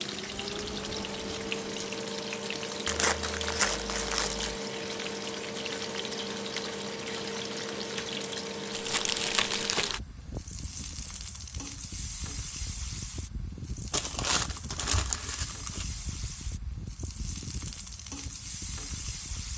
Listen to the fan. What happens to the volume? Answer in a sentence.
The volume of the fan goes down.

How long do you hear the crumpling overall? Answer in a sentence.
You can hear the crumpling for 5 seconds altogether.